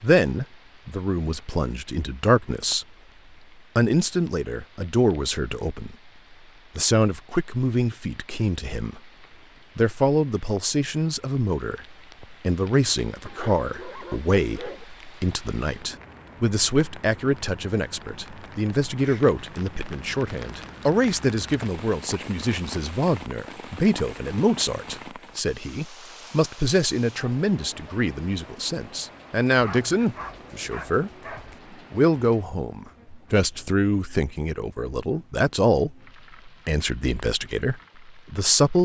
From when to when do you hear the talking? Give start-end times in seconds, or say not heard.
0.0-2.9, 3.8-6.0, 6.8-9.0, 9.8-31.1, 31.9-38.7.